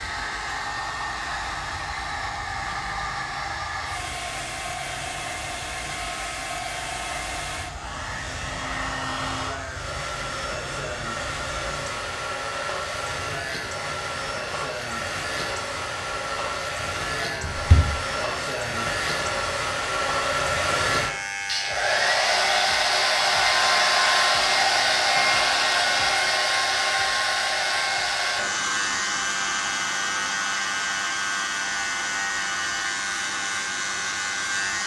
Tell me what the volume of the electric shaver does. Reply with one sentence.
The volume of the electric shaver goes up.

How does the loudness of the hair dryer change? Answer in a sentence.
The loudness of the hair dryer goes up, then down.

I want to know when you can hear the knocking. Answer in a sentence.
The knocking can be heard from 17.4 to 17.9 s.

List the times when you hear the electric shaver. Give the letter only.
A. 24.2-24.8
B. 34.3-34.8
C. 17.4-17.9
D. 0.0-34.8
D.